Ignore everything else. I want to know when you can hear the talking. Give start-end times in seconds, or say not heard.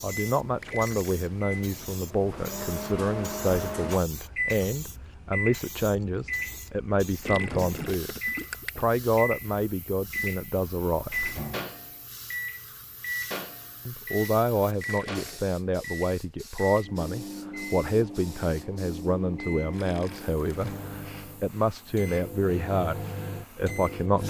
0.0-11.4, 13.8-24.2.